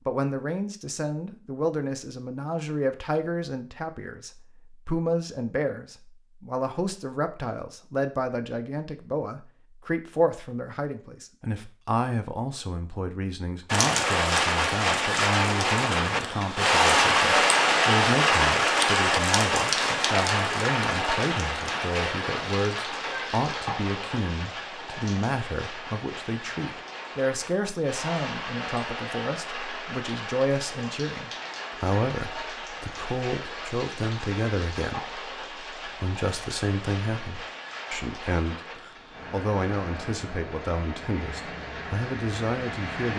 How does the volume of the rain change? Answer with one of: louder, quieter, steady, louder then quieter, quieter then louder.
quieter.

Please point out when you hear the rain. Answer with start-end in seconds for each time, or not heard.
13.7-43.1.